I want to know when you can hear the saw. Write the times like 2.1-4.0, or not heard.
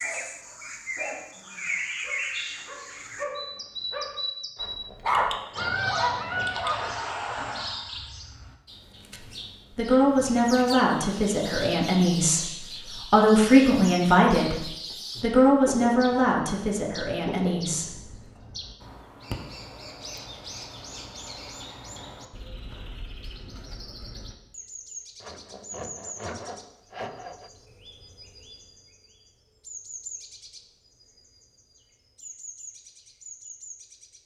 4.5-7.1, 25.2-27.5.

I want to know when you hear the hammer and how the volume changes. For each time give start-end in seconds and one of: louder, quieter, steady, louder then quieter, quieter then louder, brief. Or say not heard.
not heard.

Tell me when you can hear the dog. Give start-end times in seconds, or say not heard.
0.0-7.0.